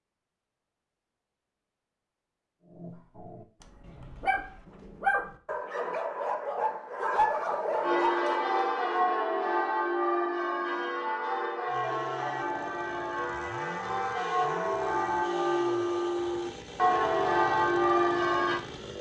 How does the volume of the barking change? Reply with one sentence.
The loudness of the barking goes up.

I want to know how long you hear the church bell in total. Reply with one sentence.
You can hear the church bell for 11 seconds altogether.